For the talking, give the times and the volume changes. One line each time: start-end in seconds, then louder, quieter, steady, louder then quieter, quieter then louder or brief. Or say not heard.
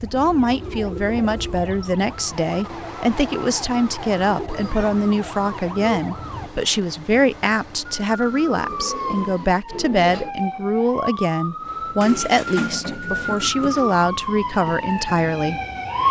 0.0-15.6 steady.